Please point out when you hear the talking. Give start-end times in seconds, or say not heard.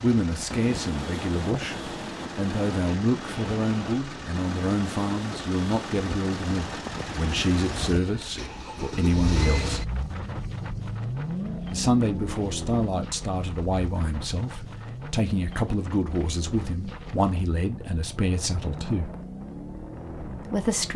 0.0-9.8, 11.7-19.1, 20.3-20.9.